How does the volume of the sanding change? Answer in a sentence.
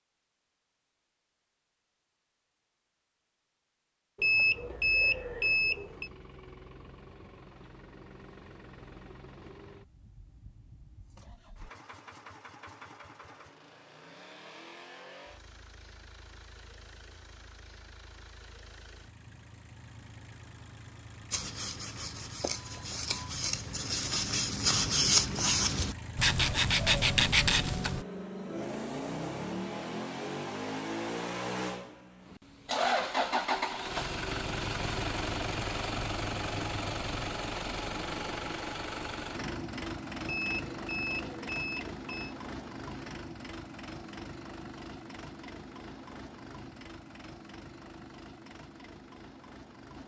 The loudness of the sanding goes up.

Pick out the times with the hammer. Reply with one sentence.
The hammer can't be heard in this clip.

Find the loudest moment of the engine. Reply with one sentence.
The volume of the engine peaks at 33 seconds.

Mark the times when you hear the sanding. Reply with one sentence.
You can hear the sanding from 21.3 to 28.1 s.